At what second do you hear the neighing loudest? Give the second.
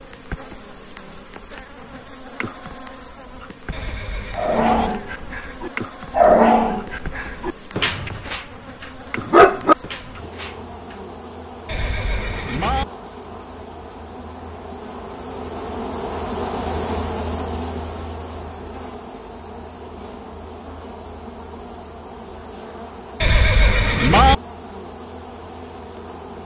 24 s.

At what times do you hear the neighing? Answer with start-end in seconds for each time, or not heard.
3.7-4.9, 11.7-12.8, 23.2-24.4.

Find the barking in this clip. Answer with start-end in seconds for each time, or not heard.
4.3-10.5.